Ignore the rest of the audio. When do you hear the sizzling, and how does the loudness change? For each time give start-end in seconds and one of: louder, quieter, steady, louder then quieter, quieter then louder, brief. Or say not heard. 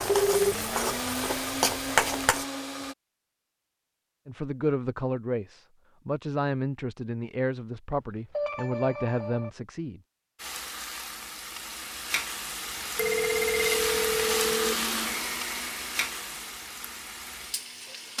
0.0-2.5 brief
10.3-18.1 louder then quieter.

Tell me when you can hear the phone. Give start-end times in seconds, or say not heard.
0.1-0.6, 8.3-9.5, 12.9-14.8.